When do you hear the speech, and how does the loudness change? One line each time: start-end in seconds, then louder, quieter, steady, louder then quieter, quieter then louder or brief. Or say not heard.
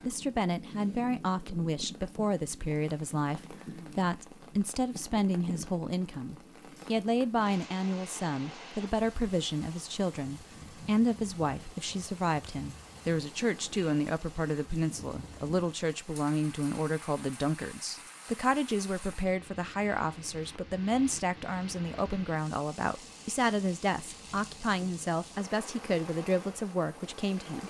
0.1-27.6 steady.